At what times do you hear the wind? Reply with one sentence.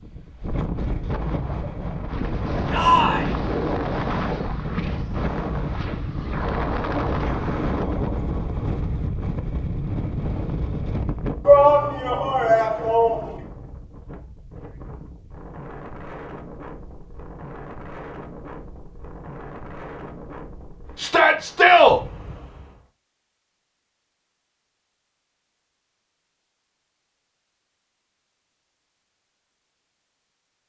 You can hear the wind from 0.0 to 22.9 s.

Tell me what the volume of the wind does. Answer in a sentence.
The loudness of the wind goes down.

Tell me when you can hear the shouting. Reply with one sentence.
You can hear the shouting from 2.7 to 3.3 s, from 11.4 to 13.4 s and from 20.9 to 22.0 s.